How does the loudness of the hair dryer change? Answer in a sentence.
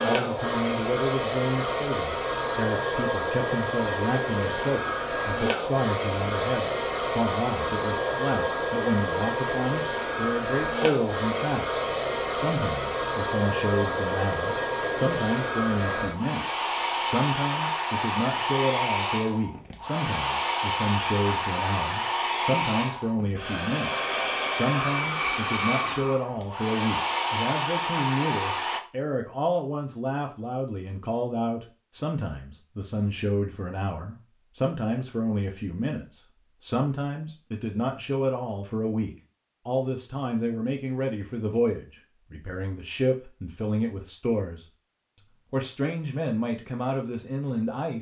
The volume of the hair dryer stays about the same.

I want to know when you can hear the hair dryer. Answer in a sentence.
You can hear the hair dryer from 0.0 to 28.8 s.